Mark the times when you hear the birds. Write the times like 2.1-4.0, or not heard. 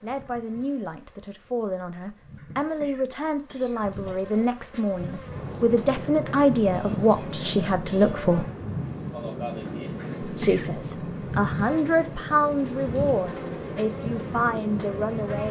5.2-15.4.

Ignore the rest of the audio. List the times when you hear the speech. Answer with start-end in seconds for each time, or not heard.
0.0-8.4, 10.2-15.4.